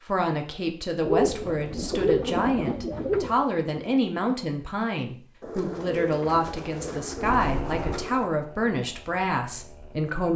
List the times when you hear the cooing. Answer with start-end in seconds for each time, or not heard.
1.0-3.5, 5.4-8.3.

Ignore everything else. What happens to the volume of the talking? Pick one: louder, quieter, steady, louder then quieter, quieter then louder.
steady.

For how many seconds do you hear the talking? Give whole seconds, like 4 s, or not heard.
10 s.